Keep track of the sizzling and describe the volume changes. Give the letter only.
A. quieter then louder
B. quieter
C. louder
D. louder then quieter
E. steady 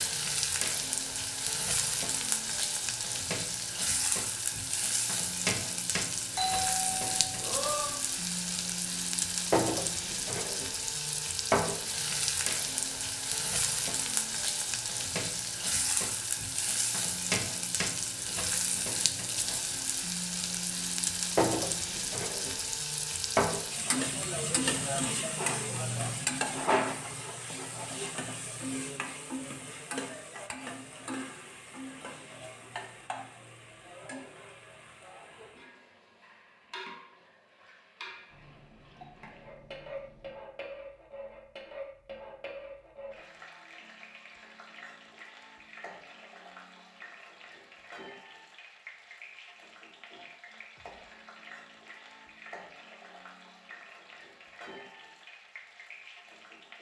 B.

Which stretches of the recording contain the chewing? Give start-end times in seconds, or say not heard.
not heard.